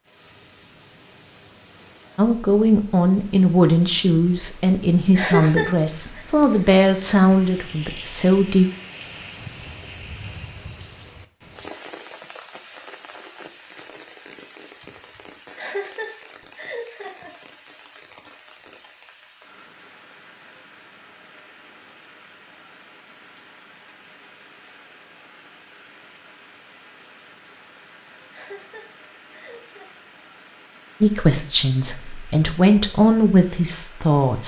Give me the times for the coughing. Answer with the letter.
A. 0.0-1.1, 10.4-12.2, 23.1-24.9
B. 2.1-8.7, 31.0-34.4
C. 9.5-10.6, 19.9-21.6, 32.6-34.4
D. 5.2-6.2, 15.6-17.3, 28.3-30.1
D.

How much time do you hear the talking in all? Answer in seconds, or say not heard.
10 s.